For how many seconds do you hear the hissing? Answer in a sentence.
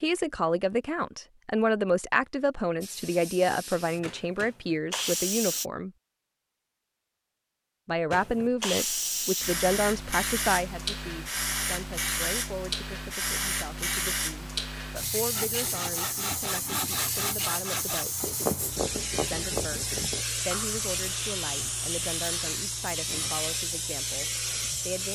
You can hear the hissing for 20 seconds altogether.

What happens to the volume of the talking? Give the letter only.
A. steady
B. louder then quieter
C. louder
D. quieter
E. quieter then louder
D.